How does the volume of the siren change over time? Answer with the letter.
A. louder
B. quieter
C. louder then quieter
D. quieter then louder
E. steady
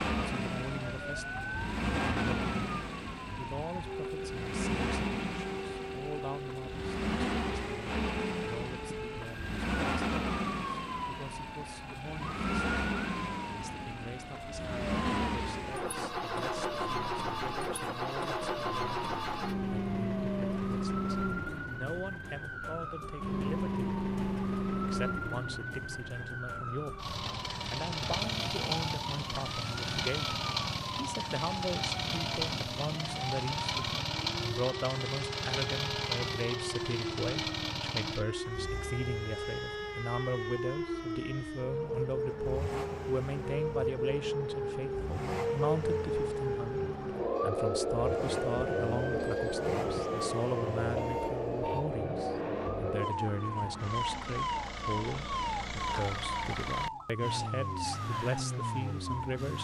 A.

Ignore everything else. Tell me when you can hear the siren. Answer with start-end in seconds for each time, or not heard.
0.0-59.5.